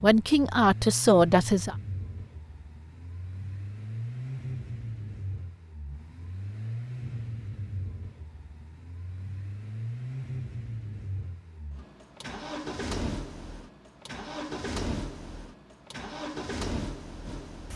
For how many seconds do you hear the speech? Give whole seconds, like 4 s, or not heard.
2 s.